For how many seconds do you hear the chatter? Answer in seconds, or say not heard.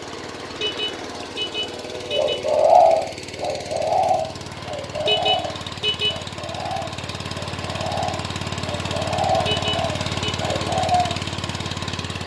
not heard.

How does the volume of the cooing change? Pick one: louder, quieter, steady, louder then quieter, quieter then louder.
quieter then louder.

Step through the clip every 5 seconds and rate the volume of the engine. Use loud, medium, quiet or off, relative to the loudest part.
medium, loud, loud.